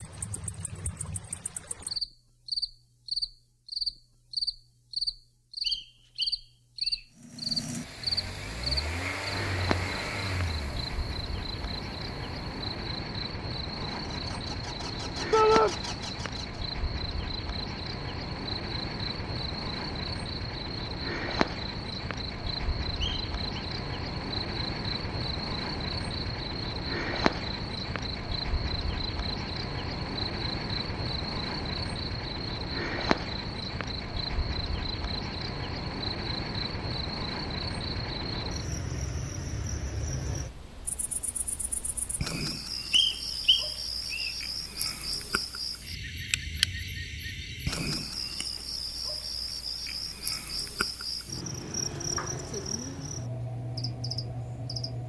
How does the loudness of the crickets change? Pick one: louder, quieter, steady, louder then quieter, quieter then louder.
steady.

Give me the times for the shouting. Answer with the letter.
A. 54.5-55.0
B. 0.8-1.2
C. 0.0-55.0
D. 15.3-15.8
D.